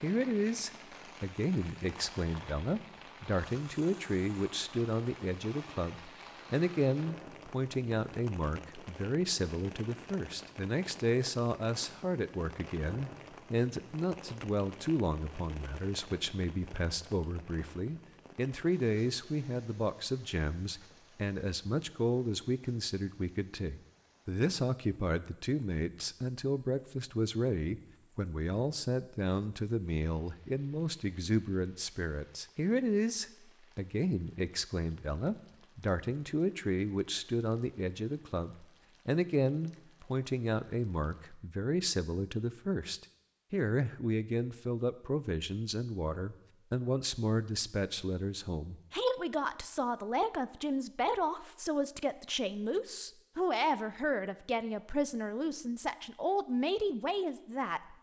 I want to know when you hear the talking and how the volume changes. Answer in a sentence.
The talking can be heard from 0.0 to 57.9 s, at a steady volume.